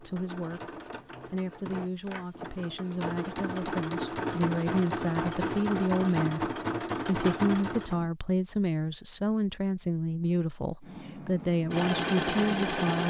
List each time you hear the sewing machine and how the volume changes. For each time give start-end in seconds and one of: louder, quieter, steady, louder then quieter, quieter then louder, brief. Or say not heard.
0.0-8.1 louder
10.8-13.0 brief.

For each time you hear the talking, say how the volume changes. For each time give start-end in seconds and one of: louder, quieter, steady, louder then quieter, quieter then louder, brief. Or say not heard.
0.0-13.0 louder.